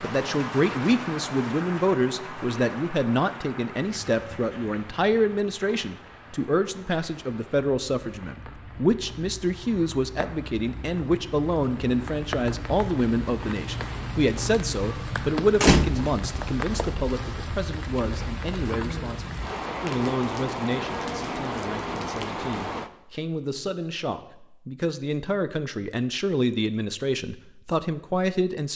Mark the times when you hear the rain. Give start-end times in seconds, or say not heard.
0.0-22.9.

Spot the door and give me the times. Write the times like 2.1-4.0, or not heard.
15.5-16.2.